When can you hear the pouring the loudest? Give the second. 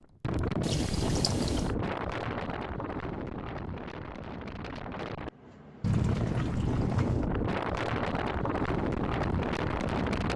6 s.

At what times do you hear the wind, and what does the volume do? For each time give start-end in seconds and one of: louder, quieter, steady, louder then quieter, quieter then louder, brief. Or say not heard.
0.0-10.3 quieter then louder.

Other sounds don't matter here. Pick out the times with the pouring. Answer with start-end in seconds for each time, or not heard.
0.6-1.7, 5.8-7.3.